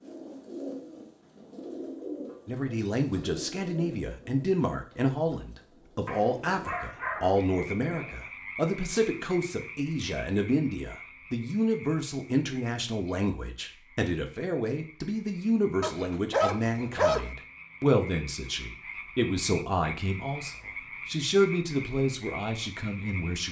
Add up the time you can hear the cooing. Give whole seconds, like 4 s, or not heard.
7 s.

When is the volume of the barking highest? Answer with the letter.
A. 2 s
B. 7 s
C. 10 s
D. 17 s
D.